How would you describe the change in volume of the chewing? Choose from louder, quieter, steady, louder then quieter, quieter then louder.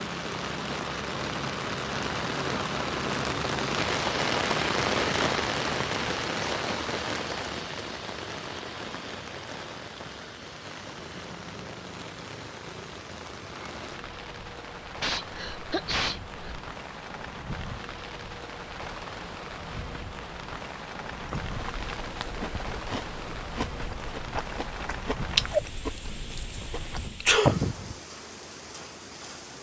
louder then quieter.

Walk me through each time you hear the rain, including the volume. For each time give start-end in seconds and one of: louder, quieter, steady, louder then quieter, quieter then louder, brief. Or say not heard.
0.0-29.5 quieter.